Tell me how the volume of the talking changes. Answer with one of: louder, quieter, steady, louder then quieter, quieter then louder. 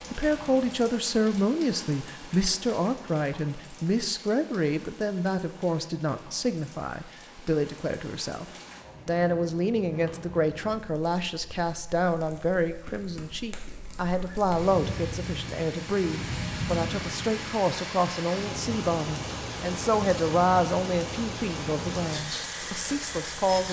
steady.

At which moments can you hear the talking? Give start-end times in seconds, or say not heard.
0.1-8.4, 9.1-23.6.